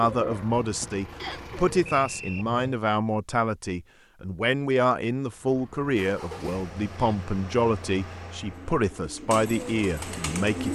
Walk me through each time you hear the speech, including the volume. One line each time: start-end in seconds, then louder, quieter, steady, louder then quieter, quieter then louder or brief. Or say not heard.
0.0-10.7 steady.